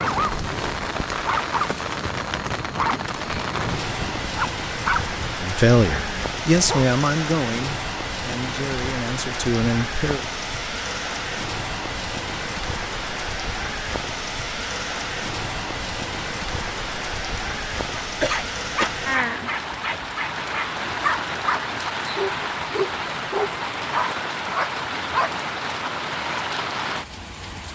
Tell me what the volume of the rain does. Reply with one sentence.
The volume of the rain stays about the same.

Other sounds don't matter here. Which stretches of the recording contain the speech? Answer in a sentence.
The speech can be heard from 5.4 to 10.2 s.